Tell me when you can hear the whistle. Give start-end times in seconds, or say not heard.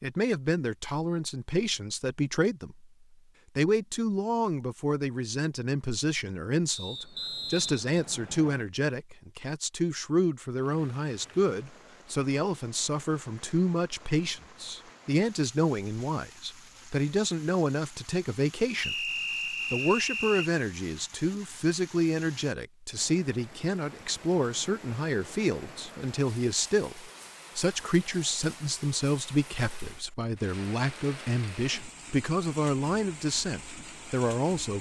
6.7-8.7, 18.8-20.5.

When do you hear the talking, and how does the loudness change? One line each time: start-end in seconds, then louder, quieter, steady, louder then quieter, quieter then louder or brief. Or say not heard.
0.0-2.9 brief
3.5-19.1 steady
19.7-34.7 steady.